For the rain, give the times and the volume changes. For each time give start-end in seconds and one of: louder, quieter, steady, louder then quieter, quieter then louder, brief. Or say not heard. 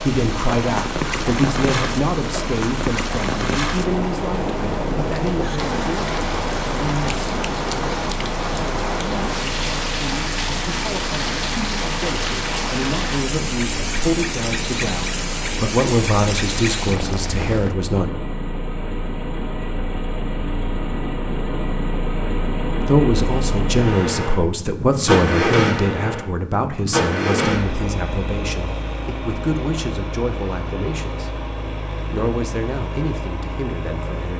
0.0-17.8 steady.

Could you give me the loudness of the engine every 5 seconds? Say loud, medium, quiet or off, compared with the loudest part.
medium, medium, medium, medium, loud, loud, medium.